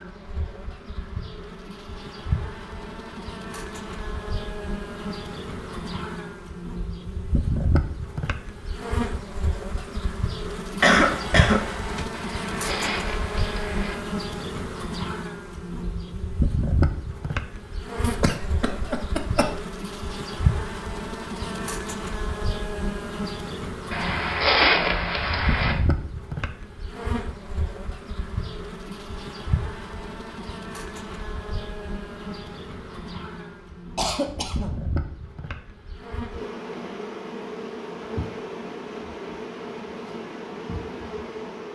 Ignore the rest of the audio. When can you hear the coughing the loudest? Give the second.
11 s.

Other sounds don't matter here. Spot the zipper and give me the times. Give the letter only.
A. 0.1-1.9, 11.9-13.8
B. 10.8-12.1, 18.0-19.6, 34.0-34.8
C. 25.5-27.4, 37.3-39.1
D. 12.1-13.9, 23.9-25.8
D.